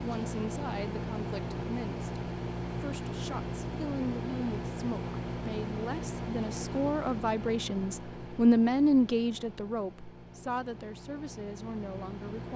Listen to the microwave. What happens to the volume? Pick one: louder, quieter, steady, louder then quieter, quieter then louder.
quieter.